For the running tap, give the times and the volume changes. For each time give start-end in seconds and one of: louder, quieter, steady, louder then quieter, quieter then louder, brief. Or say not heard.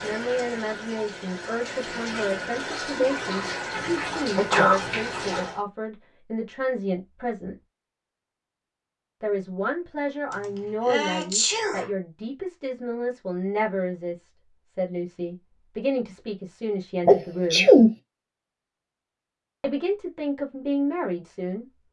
0.0-5.6 louder.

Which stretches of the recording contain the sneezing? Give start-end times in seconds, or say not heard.
2.7-4.8, 10.8-11.8, 17.1-17.9.